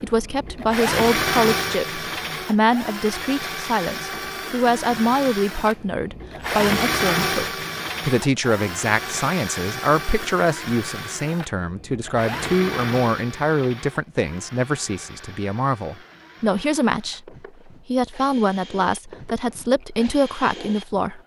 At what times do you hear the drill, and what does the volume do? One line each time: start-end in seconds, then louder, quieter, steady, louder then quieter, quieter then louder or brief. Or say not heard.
0.0-21.2 quieter.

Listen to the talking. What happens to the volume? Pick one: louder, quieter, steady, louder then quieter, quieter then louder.
steady.